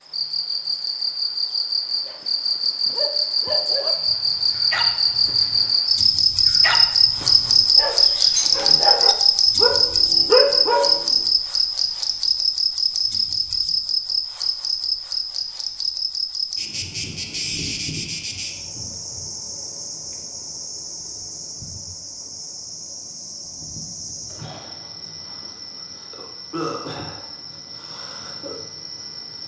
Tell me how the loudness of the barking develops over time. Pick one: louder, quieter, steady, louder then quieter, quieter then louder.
louder.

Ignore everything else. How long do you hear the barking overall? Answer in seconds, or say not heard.
9 s.